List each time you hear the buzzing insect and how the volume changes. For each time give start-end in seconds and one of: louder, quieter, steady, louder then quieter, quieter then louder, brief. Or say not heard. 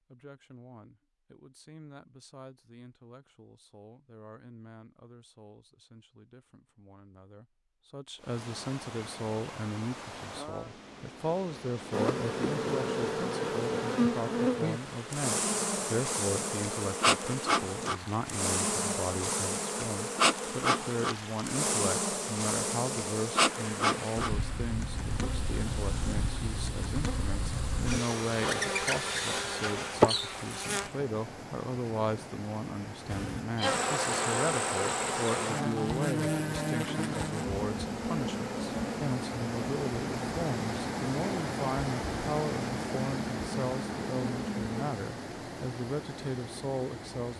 11.9-30.9 steady
33.0-44.9 quieter.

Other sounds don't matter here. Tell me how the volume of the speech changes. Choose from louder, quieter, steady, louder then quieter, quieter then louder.
louder.